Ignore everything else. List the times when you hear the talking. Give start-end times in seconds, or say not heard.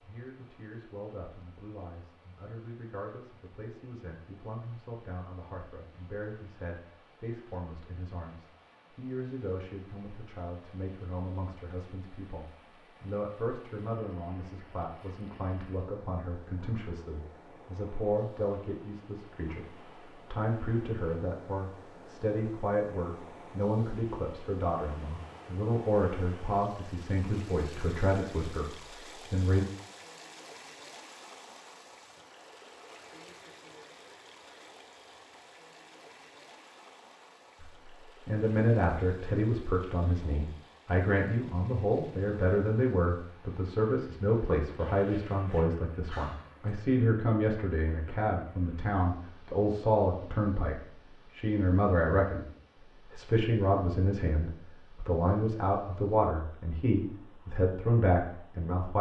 0.0-29.6, 37.6-52.5, 53.1-58.9.